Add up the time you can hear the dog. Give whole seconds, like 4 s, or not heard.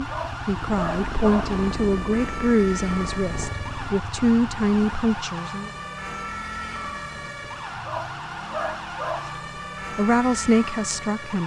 3 s.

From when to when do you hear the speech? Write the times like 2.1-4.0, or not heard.
0.0-5.7, 9.9-11.4.